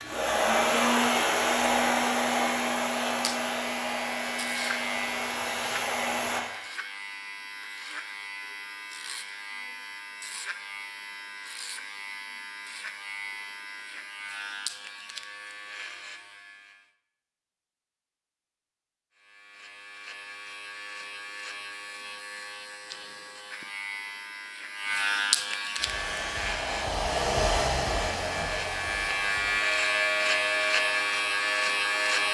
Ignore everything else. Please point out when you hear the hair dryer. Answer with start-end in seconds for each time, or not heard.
0.0-6.4, 25.8-32.2.